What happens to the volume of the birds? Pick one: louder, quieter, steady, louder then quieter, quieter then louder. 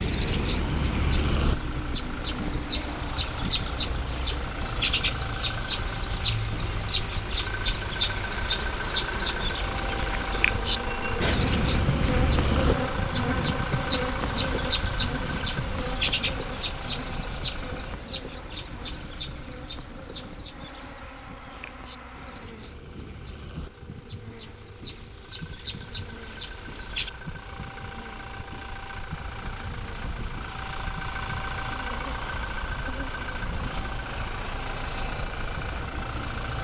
quieter.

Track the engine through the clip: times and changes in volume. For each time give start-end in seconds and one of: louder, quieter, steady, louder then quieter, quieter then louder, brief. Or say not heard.
0.0-36.5 quieter then louder.